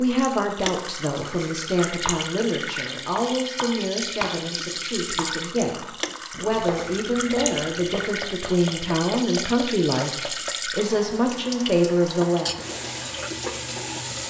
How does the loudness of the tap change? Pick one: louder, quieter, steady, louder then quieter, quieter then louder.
steady.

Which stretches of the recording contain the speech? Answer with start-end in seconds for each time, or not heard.
0.0-12.5.